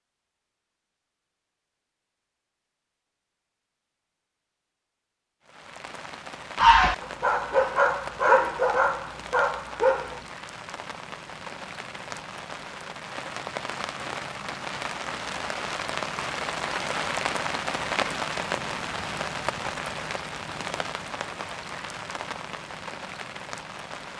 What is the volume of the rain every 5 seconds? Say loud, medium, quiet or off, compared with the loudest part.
off, medium, medium, loud, medium.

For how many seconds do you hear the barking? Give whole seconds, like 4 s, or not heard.
4 s.